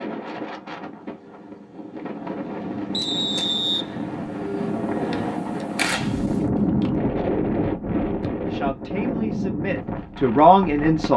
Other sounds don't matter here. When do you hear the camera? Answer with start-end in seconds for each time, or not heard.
3.0-3.5, 5.8-6.5.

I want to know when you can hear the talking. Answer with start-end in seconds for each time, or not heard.
8.5-11.1.